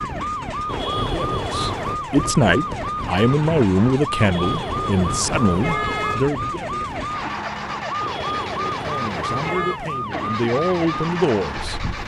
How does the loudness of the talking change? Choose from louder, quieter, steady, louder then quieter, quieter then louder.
quieter then louder.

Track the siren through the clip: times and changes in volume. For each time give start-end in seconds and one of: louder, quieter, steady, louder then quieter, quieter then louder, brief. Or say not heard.
0.0-12.0 steady.